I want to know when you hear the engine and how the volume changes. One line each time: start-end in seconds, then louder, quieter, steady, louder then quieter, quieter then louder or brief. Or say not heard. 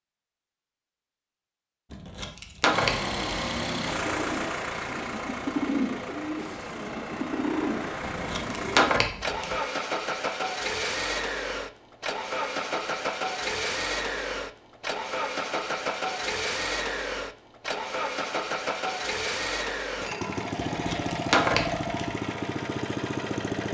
2.7-23.7 steady.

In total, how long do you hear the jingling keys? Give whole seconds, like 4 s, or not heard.
4 s.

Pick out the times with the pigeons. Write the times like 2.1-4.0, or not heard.
2.9-8.9.